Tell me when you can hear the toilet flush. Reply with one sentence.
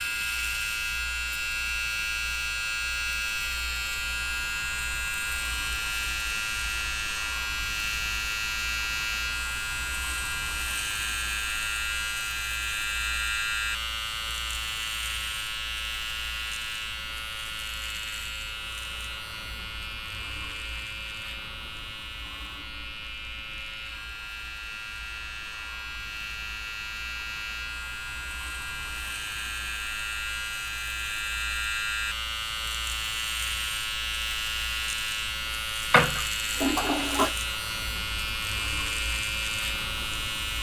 The toilet flush can be heard from 35.9 to 37.4 s.